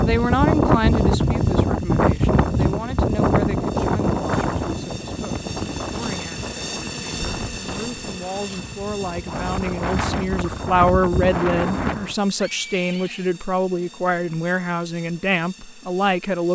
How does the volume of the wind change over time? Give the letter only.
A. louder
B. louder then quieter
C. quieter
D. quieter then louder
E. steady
D.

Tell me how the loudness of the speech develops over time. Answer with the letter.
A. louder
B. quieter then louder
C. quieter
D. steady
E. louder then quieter
B.